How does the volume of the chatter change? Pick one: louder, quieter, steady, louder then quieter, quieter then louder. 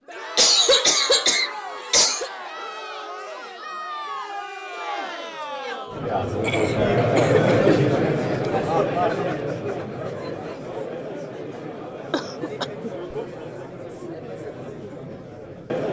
louder then quieter.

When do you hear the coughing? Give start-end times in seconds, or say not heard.
0.3-2.3, 6.4-7.8, 12.1-12.9.